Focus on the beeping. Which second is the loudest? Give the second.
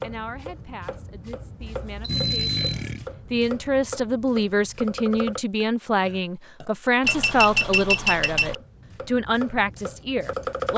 8 s.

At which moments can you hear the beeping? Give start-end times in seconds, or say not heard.
1.6-2.6, 7.0-8.6.